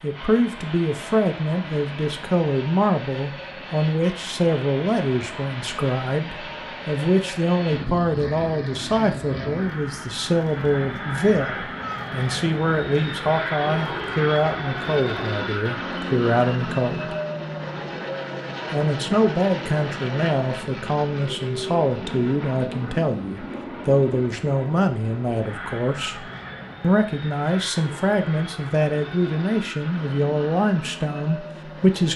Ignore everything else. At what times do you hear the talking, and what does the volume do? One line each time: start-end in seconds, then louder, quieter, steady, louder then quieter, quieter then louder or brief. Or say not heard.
0.0-17.1 steady
18.7-32.1 steady.